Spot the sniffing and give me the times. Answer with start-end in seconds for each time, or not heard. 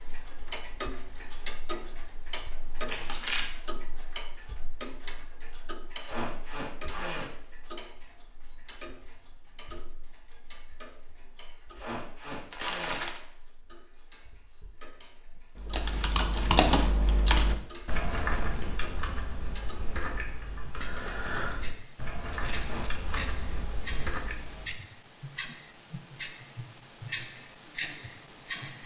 6.0-7.3, 11.8-13.1, 22.6-23.3.